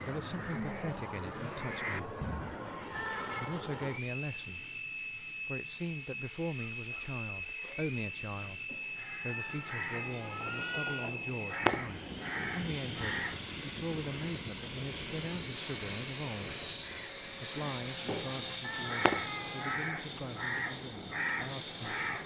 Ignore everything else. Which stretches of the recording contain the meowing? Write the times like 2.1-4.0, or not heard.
2.9-3.6, 9.2-11.1, 18.6-19.8.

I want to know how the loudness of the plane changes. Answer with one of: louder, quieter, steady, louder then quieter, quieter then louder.
steady.